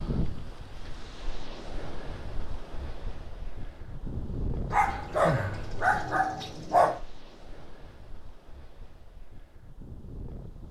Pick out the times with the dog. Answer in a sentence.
You can hear the dog from 4.7 to 7.0 s.